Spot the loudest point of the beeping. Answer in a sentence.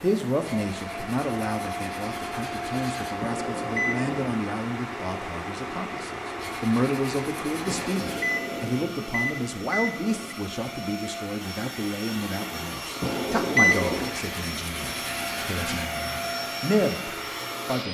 The loudest moment of the beeping is at 14 seconds.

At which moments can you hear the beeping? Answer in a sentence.
The beeping can be heard from 3.2 to 4.3 s, from 7.7 to 10.3 s and from 13.0 to 14.2 s.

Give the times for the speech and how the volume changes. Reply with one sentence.
The speech can be heard from 0.0 to 17.8 s, at a steady volume.